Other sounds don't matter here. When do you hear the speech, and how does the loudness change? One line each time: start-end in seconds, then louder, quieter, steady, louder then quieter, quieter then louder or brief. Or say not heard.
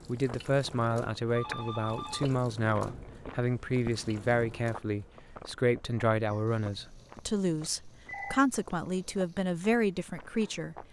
0.1-10.8 steady.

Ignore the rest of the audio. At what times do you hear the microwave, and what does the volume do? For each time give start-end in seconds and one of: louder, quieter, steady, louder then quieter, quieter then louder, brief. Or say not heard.
not heard.